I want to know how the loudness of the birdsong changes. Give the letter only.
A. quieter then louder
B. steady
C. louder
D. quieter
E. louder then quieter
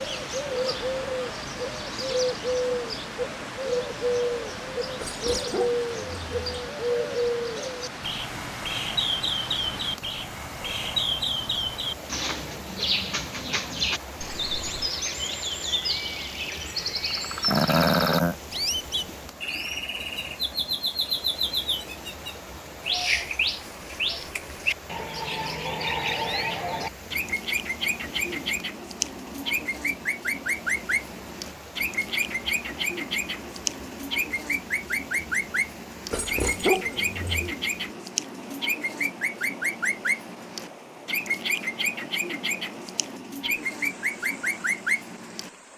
B.